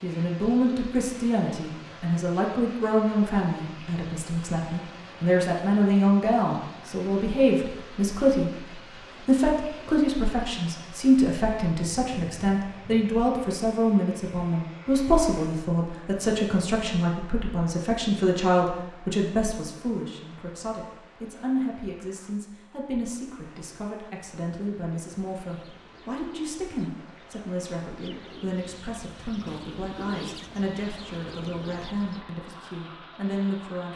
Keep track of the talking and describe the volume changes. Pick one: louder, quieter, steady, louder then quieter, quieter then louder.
quieter.